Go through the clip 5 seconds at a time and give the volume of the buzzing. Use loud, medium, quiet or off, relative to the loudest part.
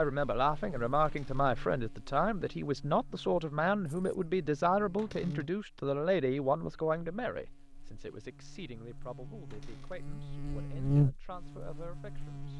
quiet, quiet, loud.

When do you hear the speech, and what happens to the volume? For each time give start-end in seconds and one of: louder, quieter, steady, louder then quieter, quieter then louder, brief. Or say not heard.
0.0-12.5 quieter.